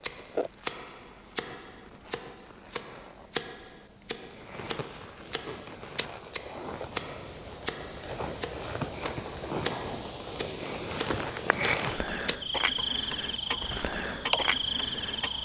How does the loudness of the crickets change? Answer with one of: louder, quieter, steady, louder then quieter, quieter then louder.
louder.